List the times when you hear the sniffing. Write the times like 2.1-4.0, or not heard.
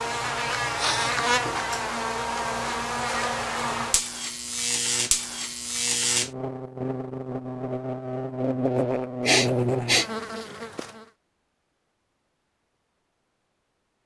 0.6-1.2, 9.2-10.1.